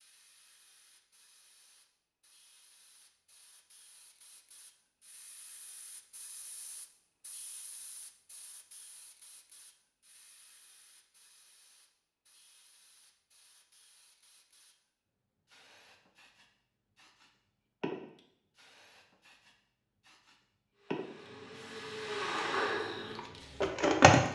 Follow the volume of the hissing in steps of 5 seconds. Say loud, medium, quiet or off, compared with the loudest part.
quiet, medium, quiet, loud, loud.